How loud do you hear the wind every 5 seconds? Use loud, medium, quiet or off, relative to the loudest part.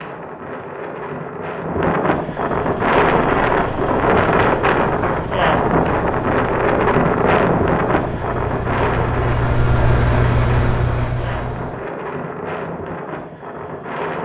loud, loud, medium.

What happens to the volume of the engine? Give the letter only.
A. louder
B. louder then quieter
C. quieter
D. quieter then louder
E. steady
A.